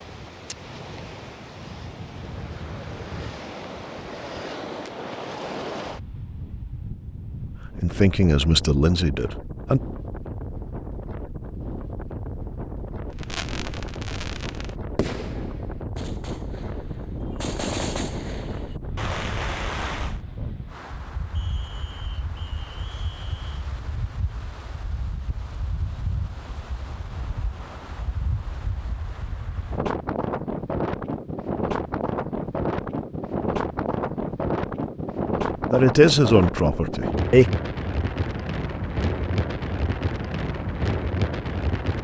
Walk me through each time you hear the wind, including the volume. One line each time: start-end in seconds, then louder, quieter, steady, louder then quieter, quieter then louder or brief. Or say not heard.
0.0-41.9 louder.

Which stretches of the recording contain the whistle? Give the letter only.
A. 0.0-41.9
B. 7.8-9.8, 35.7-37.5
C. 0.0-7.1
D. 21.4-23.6
D.